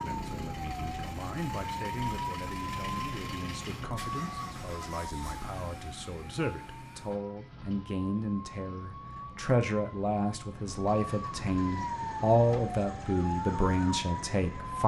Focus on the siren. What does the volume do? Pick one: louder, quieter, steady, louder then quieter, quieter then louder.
quieter then louder.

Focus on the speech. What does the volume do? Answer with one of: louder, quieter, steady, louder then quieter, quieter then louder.
louder.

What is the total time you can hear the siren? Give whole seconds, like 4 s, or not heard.
15 s.